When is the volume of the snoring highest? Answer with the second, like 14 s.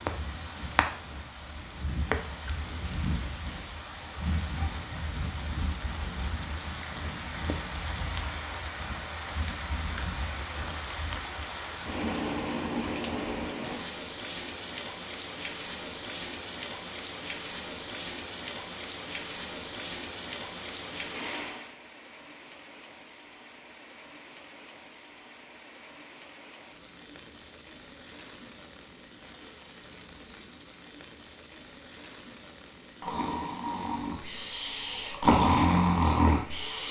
35 s.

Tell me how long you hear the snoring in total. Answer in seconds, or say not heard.
4 s.